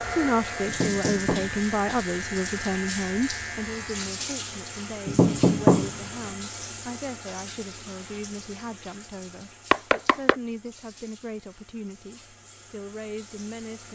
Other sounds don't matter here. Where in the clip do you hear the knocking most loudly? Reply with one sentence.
The loudest moment of the knocking is at 6 seconds.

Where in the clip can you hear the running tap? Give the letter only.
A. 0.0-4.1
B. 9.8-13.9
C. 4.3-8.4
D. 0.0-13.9
D.